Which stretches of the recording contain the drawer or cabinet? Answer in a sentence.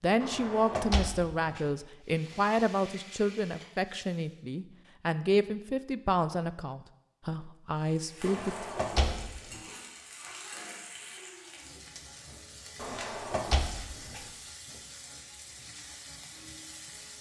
You can hear the drawer or cabinet from 0.2 to 1.6 s, from 8.2 to 9.6 s and from 12.8 to 14.2 s.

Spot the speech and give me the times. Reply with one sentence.
You can hear the speech from 0.0 to 8.7 s.